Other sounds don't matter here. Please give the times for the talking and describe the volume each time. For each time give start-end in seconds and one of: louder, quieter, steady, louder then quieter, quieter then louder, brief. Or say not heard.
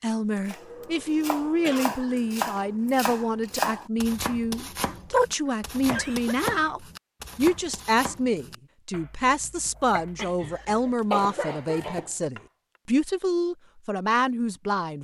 0.0-14.9 steady.